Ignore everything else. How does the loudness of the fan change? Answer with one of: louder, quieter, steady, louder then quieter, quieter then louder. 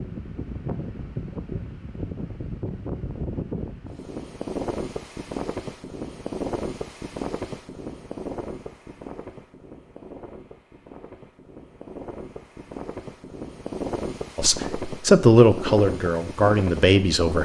quieter then louder.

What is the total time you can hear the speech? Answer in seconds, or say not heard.
3 s.